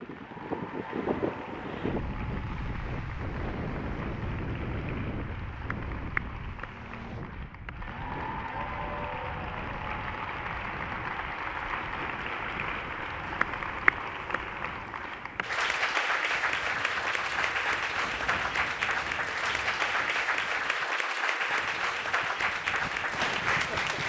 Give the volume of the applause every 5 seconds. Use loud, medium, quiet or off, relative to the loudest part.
quiet, medium, loud, loud, loud.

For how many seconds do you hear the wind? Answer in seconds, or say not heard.
24 s.